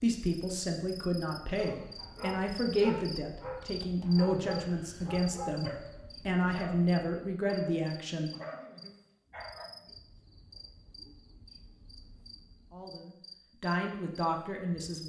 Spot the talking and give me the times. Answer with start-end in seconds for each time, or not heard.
0.0-8.3, 12.7-15.0.